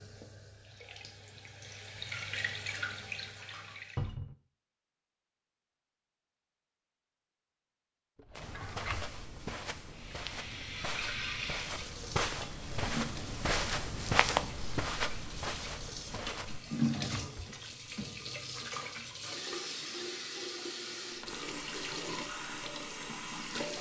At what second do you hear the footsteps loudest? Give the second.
14 s.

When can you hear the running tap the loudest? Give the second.
17 s.